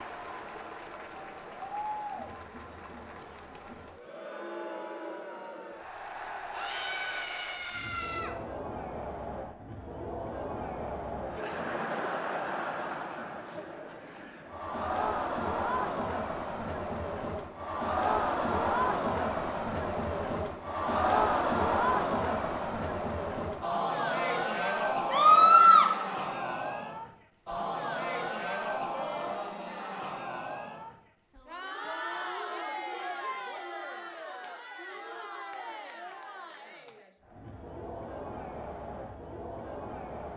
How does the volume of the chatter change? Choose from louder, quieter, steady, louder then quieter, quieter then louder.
louder then quieter.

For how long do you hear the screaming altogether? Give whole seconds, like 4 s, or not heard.
3 s.